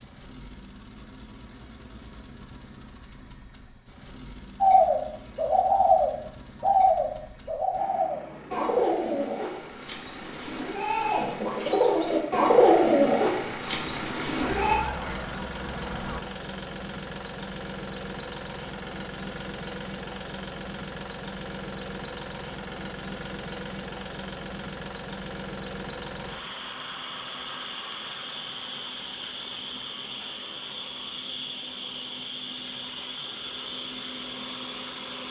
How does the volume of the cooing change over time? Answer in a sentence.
The loudness of the cooing goes down, then up.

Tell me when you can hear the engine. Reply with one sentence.
You can hear the engine from 0.0 to 35.2 s.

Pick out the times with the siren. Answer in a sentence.
You can hear the siren from 14.4 to 16.2 s.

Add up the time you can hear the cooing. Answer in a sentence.
The cooing can be heard for 10 seconds in total.